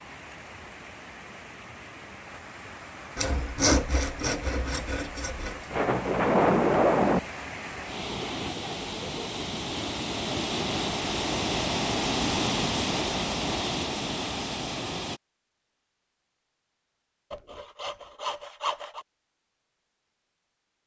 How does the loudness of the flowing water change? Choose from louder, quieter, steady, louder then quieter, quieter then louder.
louder.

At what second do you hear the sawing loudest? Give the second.
4 s.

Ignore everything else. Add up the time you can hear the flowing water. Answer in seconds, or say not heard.
15 s.